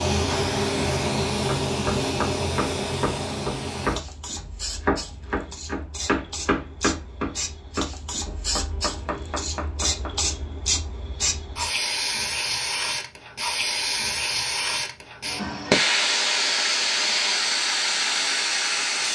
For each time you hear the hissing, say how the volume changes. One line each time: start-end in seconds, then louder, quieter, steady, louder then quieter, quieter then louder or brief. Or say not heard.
0.0-19.0 quieter then louder.